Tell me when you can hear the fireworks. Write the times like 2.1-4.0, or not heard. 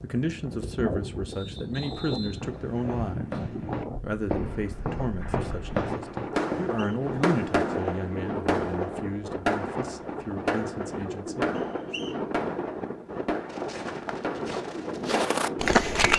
6.3-15.4.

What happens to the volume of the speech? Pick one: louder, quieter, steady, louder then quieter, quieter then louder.
quieter.